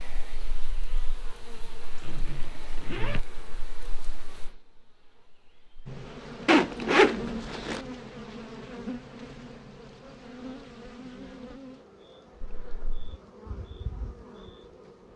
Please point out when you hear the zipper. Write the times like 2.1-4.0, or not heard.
2.0-3.2, 6.5-7.8, 12.4-13.1.